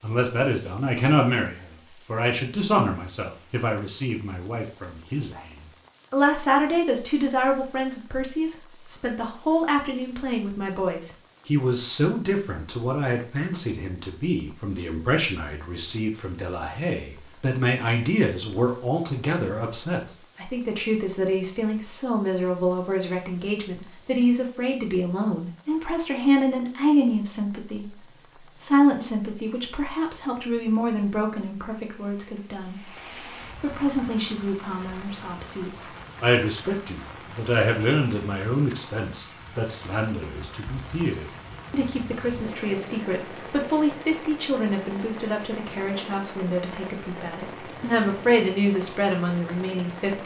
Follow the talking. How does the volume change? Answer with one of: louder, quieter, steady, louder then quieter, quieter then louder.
steady.